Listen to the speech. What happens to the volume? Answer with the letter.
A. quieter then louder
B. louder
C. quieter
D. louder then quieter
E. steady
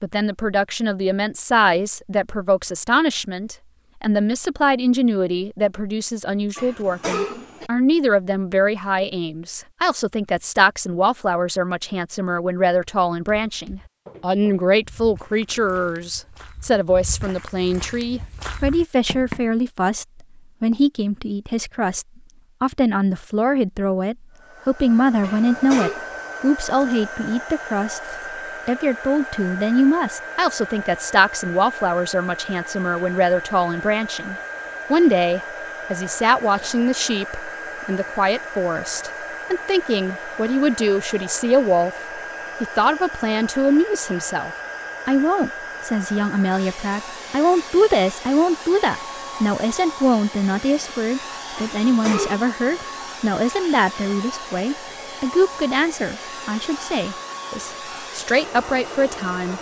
E.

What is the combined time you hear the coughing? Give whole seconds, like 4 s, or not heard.
3 s.